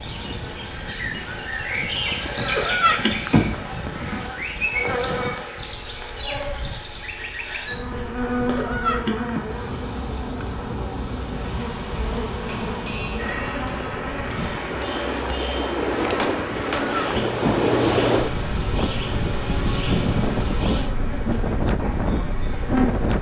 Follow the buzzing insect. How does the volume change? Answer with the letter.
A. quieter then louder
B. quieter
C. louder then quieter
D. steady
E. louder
D.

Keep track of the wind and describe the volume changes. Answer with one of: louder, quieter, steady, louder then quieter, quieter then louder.
louder.